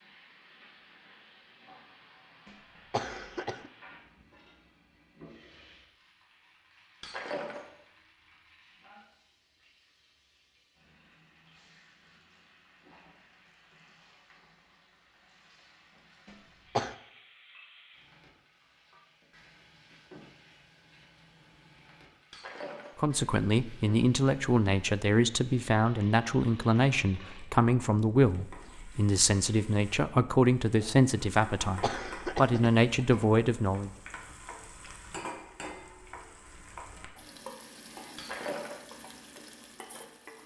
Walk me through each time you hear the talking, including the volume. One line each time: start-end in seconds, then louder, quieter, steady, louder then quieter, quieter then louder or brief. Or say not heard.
22.9-33.9 steady.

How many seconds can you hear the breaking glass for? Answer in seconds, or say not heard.
2 s.